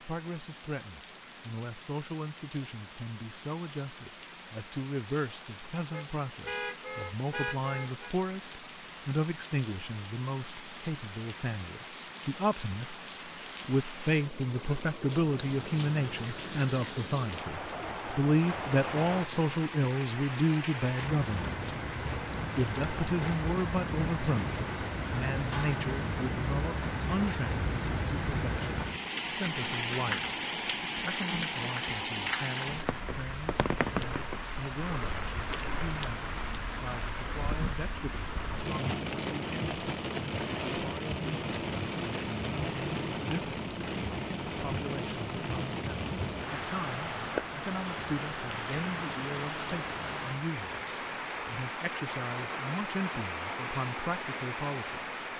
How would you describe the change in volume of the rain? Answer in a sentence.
The volume of the rain goes up.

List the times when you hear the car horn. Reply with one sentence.
The car horn can be heard from 5.9 to 8.2 s.